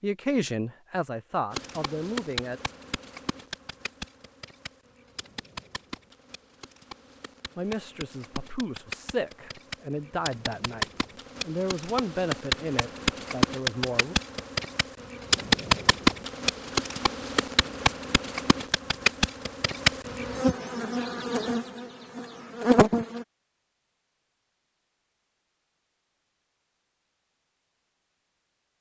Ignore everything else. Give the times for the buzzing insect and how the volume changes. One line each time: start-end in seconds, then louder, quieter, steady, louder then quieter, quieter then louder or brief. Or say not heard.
1.5-23.2 louder.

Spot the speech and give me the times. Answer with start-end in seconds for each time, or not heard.
0.0-2.6, 7.5-14.2.